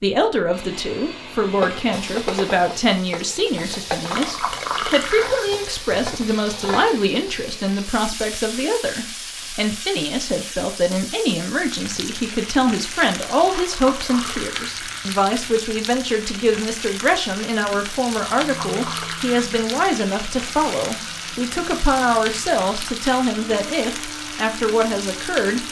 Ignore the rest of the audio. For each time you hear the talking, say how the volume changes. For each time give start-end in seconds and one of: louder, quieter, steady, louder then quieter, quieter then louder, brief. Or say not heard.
0.0-25.6 steady.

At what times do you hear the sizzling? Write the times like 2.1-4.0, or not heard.
1.4-25.6.